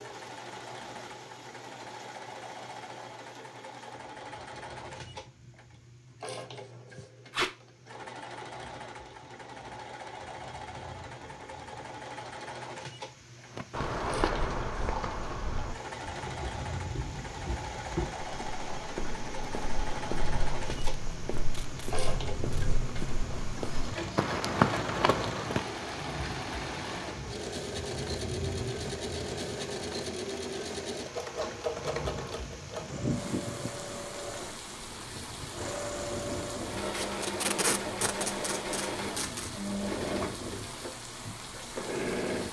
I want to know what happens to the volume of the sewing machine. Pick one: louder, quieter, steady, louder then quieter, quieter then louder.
louder.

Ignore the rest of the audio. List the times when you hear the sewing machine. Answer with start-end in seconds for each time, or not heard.
0.0-42.4.